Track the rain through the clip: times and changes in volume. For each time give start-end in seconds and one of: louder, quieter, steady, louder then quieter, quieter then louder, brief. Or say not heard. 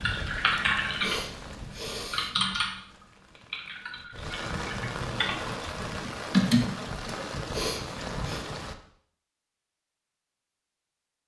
0.0-8.8 quieter then louder.